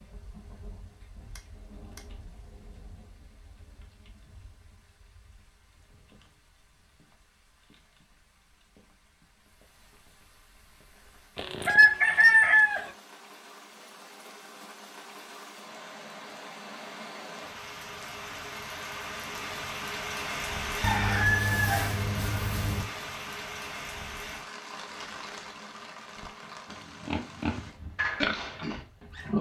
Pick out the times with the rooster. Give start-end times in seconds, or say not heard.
11.3-12.9, 20.8-22.9.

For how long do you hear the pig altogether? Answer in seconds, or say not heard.
3 s.